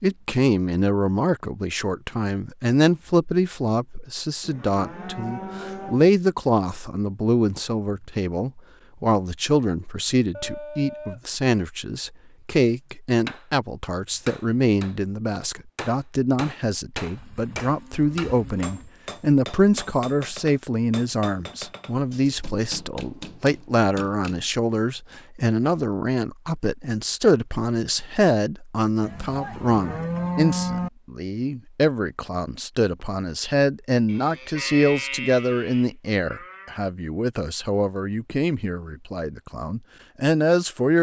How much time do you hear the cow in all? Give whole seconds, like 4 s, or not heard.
9 s.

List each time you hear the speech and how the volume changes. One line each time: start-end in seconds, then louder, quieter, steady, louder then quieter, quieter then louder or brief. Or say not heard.
0.0-40.9 steady.